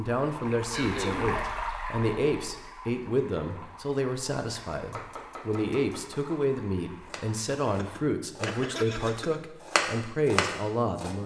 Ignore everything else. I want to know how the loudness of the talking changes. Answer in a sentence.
The loudness of the talking stays about the same.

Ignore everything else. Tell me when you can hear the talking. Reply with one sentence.
You can hear the talking from 0.0 to 11.2 s.